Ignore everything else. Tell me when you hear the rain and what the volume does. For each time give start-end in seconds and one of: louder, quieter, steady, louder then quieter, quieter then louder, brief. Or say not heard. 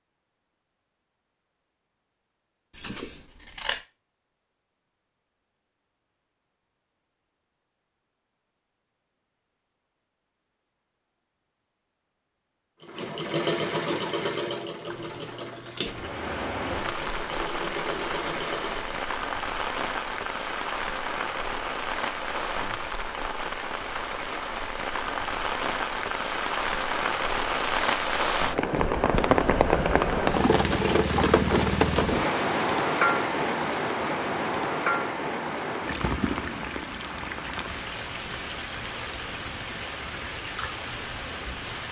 15.8-41.8 louder then quieter.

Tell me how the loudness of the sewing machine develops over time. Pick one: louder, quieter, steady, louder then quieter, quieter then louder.
quieter then louder.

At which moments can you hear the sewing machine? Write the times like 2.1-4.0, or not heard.
12.8-19.1.